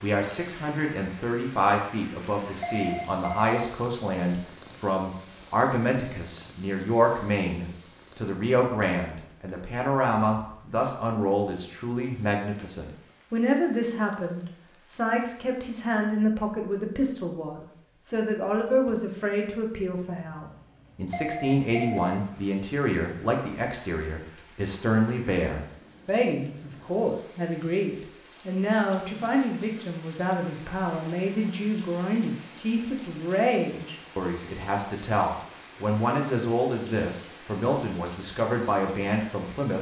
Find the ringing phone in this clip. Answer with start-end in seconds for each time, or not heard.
2.6-3.7, 21.1-22.2.